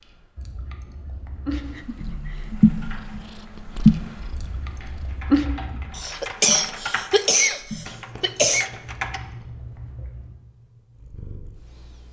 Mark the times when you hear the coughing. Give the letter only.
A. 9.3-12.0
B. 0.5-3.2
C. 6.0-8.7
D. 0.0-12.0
C.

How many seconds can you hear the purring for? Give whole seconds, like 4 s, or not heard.
12 s.